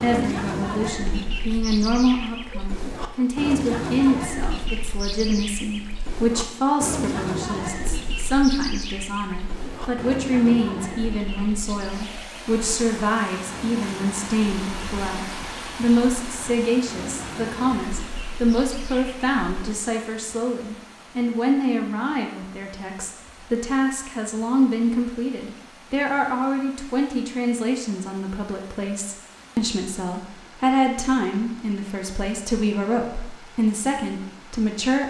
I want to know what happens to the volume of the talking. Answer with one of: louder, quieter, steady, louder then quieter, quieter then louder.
steady.